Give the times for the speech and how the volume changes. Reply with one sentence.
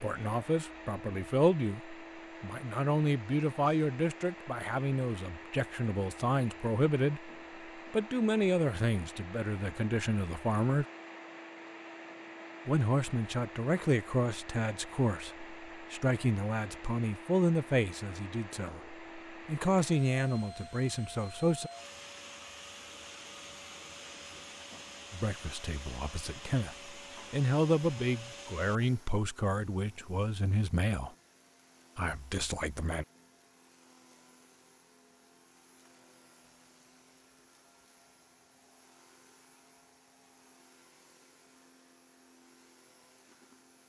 The speech can be heard from 0.0 to 10.8 s, at a steady volume; from 12.7 to 21.7 s, getting quieter then louder; from 25.1 to 31.1 s, getting louder then quieter; and briefly from 31.9 to 33.0 s.